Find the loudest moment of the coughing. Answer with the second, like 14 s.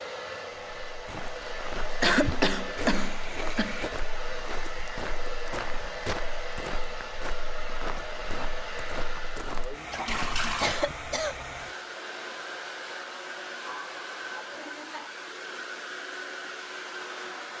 2 s.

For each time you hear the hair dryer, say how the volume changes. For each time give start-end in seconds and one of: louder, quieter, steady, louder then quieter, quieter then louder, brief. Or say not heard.
0.0-17.5 steady.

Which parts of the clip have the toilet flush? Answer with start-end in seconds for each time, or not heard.
2.8-3.9, 9.9-10.9.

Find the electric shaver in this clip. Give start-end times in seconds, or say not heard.
not heard.